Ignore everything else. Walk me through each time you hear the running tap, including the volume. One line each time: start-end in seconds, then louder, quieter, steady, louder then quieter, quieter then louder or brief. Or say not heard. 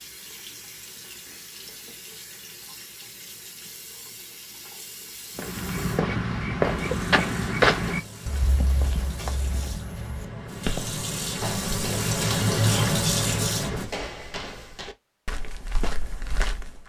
0.0-13.9 louder.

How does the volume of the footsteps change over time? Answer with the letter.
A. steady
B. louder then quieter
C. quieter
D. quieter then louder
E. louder
C.